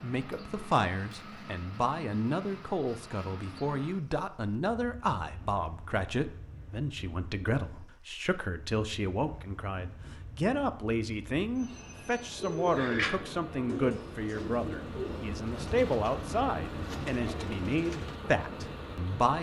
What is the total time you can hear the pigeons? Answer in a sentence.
The pigeons can be heard for 6 seconds in total.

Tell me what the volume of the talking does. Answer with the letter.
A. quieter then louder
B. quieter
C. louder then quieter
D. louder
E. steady
E.